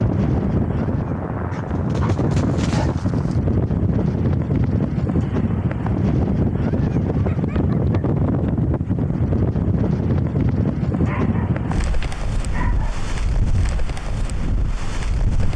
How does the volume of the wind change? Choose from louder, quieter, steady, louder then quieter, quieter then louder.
quieter.